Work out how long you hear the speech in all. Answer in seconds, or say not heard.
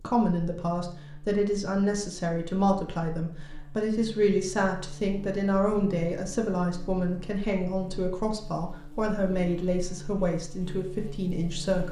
12 s.